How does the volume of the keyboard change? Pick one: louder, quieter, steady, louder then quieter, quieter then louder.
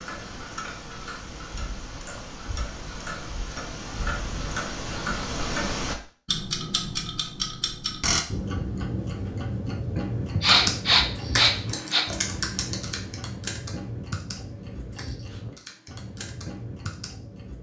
quieter.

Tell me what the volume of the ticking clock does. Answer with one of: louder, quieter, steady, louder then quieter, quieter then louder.
louder then quieter.